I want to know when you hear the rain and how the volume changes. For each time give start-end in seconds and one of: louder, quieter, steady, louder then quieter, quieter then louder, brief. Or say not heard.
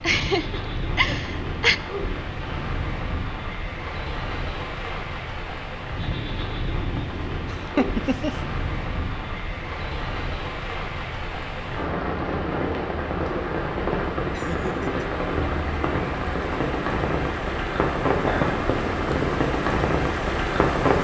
0.0-20.9 louder.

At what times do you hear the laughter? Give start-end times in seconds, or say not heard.
0.0-1.8, 7.8-8.3, 14.0-15.1.